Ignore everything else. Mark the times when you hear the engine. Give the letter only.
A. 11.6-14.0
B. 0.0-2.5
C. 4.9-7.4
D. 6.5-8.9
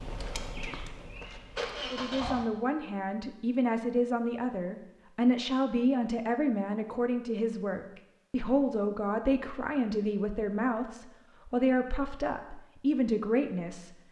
B.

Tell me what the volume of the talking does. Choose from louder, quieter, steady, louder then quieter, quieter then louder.
steady.